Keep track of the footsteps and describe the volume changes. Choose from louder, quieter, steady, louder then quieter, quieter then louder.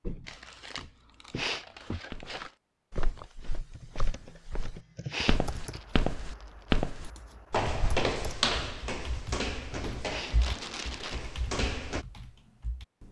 louder then quieter.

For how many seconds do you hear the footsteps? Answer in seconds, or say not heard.
12 s.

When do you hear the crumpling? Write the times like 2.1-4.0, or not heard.
0.2-2.5, 5.5-6.8, 10.2-11.2.